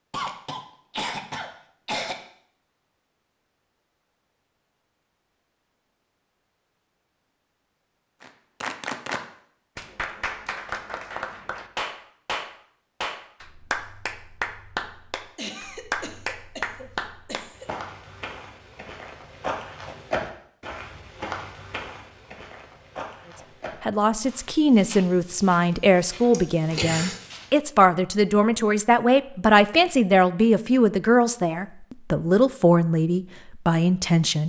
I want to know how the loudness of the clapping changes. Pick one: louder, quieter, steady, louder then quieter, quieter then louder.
steady.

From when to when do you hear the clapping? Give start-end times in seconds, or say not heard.
8.2-17.9.